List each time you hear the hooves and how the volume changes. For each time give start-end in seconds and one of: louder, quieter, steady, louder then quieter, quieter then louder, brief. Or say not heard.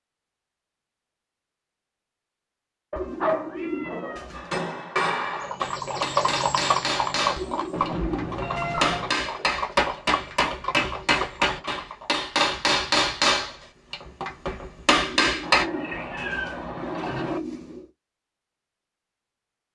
5.2-12.2 quieter.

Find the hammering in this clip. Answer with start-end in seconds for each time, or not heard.
4.3-15.7.